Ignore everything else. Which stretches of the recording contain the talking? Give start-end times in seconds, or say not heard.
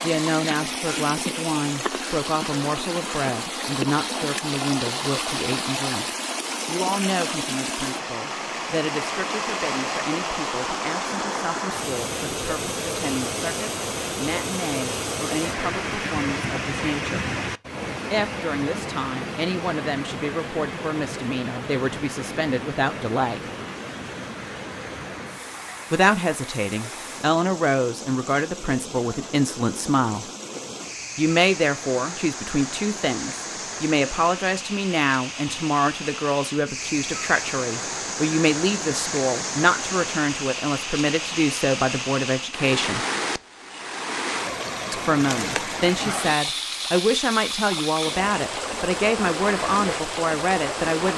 0.0-6.0, 6.7-17.2, 18.1-23.4, 25.9-30.2, 31.1-43.0, 44.9-51.1.